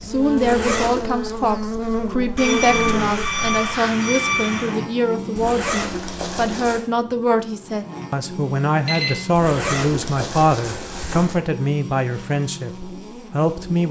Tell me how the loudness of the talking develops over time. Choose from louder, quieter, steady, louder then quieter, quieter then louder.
steady.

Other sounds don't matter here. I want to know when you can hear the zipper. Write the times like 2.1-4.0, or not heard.
0.3-1.1, 5.3-6.8, 9.3-11.3.